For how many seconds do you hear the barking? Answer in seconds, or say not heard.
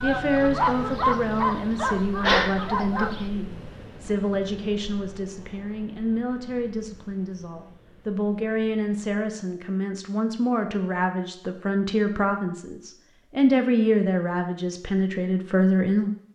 3 s.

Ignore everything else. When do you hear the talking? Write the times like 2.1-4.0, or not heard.
0.0-16.1.